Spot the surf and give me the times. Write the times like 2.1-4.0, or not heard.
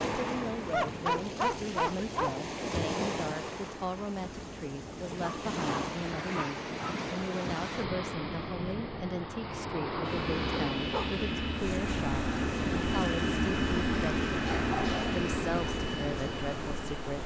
0.0-17.2.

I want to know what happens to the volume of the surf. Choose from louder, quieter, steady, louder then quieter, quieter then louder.
steady.